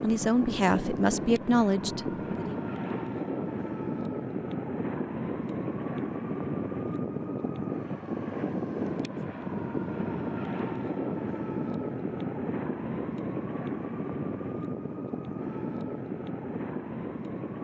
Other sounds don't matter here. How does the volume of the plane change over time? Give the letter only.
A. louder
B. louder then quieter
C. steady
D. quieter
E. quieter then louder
C.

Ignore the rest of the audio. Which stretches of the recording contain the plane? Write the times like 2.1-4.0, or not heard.
0.0-17.5.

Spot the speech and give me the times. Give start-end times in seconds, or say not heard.
0.0-2.5.